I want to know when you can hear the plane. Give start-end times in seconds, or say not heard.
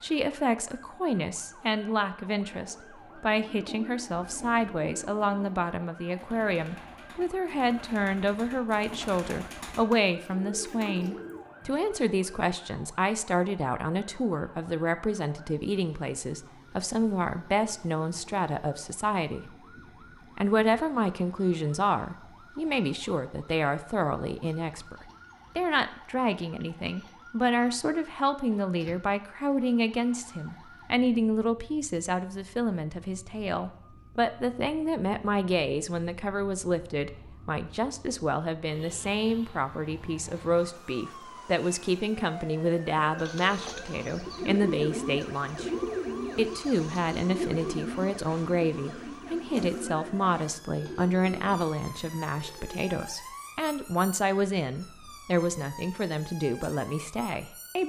not heard.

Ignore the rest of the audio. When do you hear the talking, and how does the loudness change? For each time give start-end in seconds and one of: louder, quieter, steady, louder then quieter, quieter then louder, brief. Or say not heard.
0.0-19.5 steady
20.4-45.7 steady
46.4-57.8 steady.